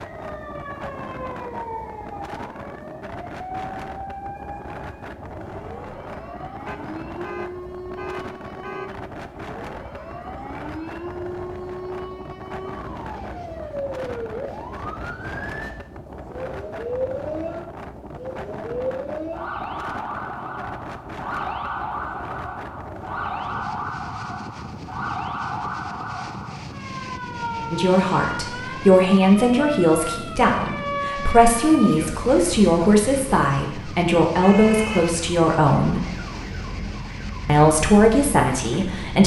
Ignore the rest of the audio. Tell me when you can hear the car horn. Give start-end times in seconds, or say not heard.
6.7-9.1.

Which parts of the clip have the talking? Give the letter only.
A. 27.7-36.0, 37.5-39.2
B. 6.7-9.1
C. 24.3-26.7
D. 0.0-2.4
A.